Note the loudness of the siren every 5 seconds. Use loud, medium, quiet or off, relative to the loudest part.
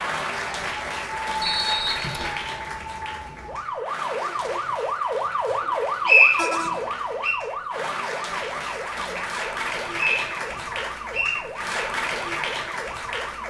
loud, loud, medium.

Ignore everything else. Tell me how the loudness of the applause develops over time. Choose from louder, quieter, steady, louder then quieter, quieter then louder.
quieter then louder.